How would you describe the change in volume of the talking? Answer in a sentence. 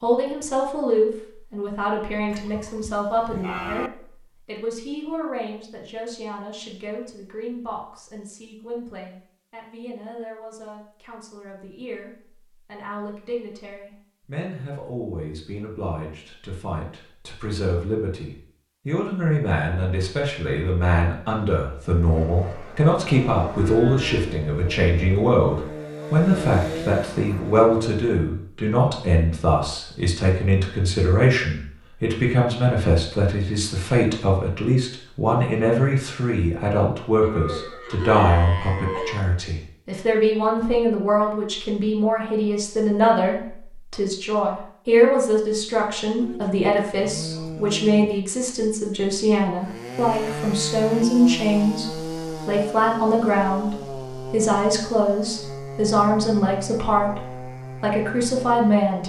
The volume of the talking goes up.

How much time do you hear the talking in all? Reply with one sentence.
The talking can be heard for 59 seconds in total.